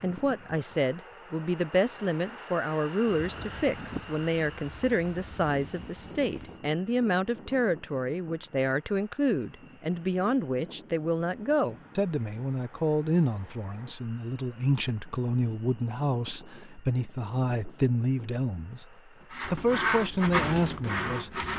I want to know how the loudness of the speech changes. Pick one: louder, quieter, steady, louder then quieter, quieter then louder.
steady.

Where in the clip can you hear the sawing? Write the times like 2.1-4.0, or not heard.
19.3-21.5.